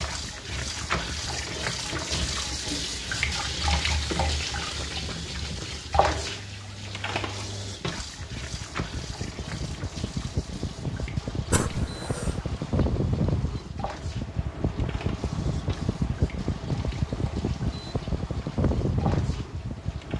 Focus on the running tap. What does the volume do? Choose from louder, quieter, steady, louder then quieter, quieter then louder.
quieter.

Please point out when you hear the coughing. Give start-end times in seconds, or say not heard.
11.5-12.4.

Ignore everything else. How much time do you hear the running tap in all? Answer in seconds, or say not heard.
20 s.